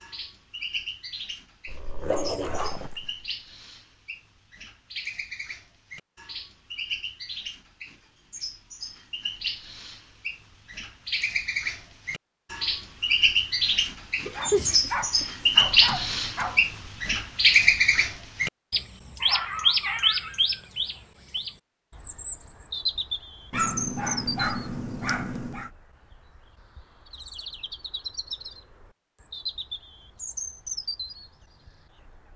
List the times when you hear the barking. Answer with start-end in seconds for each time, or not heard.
1.6-3.2, 14.2-16.6, 23.5-25.7.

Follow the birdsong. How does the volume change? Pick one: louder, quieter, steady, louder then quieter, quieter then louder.
louder then quieter.